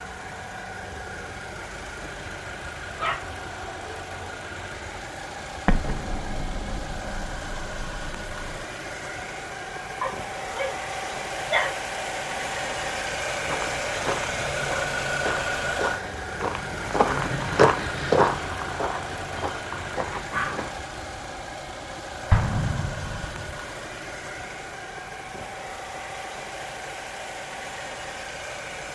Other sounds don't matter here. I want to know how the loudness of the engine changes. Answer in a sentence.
The volume of the engine goes up, then down.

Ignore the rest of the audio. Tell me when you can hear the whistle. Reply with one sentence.
You can't hear the whistle here.